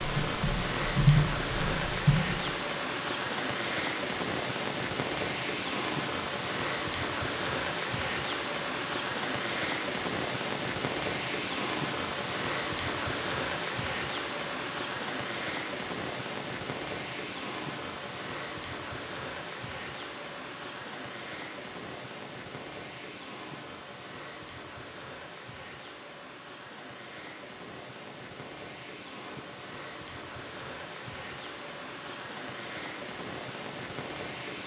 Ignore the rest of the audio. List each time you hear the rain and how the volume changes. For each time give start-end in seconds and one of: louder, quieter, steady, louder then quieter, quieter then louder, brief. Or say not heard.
0.0-34.6 quieter.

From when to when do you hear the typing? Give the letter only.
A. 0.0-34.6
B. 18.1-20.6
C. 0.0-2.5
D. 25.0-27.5
C.